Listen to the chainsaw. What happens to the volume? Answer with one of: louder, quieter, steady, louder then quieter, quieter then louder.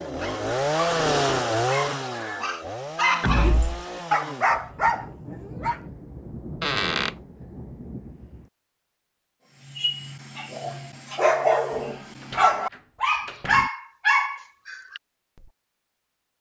quieter.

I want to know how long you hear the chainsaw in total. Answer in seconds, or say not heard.
5 s.